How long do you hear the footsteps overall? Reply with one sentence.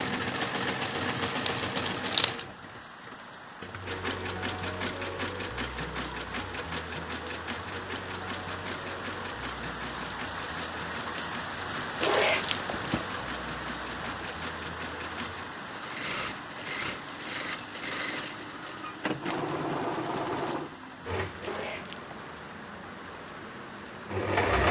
The footsteps can't be heard in this clip.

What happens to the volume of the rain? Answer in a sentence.
The volume of the rain goes up, then down.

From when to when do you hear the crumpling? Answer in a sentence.
You can hear the crumpling from 1.4 to 2.5 s, from 12.0 to 13.1 s and from 21.4 to 22.1 s.